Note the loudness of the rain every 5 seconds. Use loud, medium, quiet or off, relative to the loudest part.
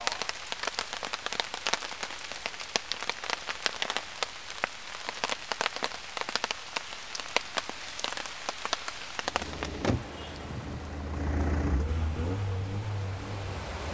loud, loud, medium.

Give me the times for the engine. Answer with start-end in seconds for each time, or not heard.
9.2-13.6.